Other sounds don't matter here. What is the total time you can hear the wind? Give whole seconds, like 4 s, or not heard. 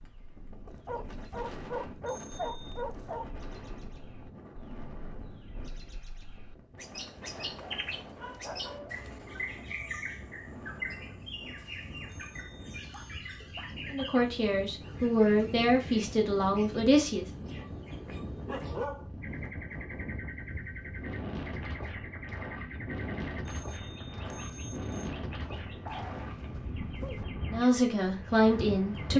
29 s.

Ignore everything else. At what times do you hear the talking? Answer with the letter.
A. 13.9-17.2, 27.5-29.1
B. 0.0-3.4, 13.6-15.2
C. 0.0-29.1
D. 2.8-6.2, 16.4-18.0
A.